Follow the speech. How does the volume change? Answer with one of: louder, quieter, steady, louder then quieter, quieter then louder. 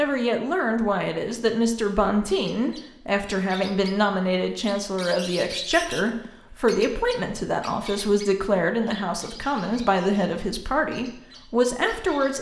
steady.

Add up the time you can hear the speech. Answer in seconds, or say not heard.
12 s.